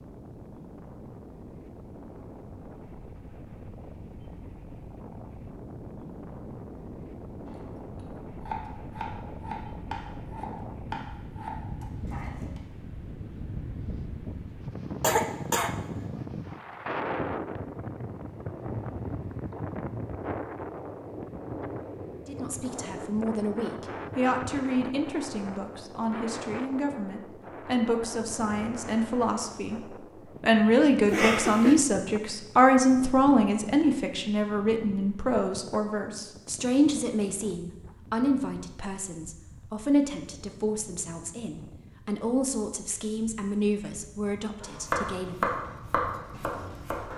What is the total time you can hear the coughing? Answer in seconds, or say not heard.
2 s.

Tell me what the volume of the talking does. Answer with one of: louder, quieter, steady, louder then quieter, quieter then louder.
louder then quieter.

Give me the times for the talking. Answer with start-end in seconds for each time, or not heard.
22.2-45.5.